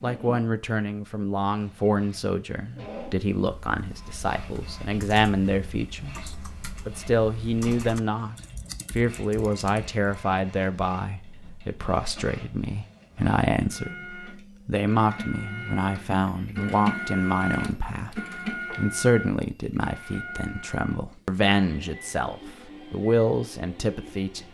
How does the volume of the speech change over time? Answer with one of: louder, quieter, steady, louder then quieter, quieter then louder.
steady.